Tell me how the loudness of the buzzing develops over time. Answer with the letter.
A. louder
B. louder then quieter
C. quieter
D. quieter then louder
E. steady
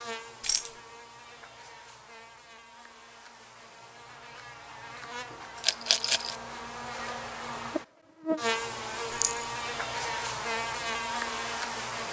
A.